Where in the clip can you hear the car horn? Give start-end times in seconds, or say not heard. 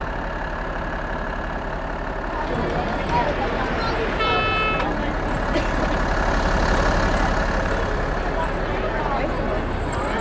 3.1-4.8.